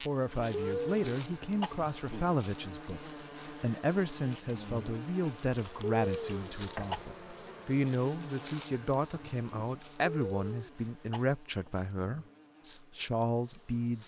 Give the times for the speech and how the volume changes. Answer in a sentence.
The speech can be heard from 0.0 to 14.0 s, at a steady volume.